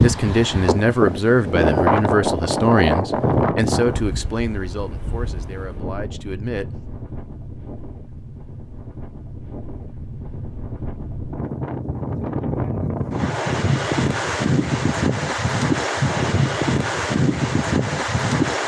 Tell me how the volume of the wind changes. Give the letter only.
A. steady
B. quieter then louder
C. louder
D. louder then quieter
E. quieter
B.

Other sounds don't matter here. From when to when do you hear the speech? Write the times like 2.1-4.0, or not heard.
0.0-6.8.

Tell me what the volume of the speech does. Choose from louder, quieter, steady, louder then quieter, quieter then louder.
quieter.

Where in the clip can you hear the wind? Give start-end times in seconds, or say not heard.
0.0-18.6.